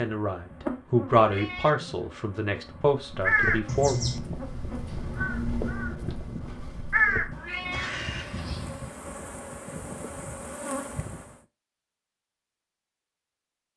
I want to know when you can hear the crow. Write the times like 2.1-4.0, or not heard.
3.0-9.0.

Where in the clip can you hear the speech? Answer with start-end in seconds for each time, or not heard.
0.0-4.0.